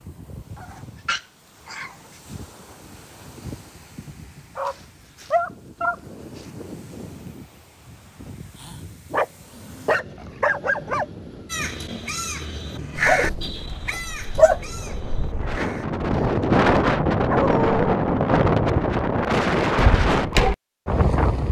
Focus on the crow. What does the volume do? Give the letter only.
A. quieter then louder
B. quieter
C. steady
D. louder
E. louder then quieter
E.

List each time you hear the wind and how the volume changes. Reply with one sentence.
The wind can be heard from 0.0 to 21.4 s, getting louder.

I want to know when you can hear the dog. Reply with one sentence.
The dog can be heard from 0.6 to 2.2 s, from 4.5 to 6.5 s, from 9.1 to 11.1 s, from 12.9 to 14.6 s and from 17.2 to 17.8 s.